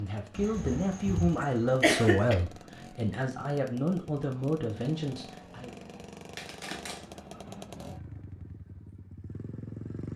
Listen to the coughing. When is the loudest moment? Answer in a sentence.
The volume of the coughing peaks at 2 seconds.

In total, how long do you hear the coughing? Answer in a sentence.
You can hear the coughing for 3 seconds altogether.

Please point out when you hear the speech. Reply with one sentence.
The speech can be heard from 0.0 to 5.8 s.